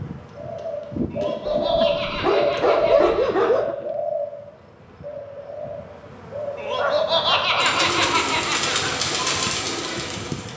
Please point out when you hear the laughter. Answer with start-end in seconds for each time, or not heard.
1.1-3.6, 6.5-8.9.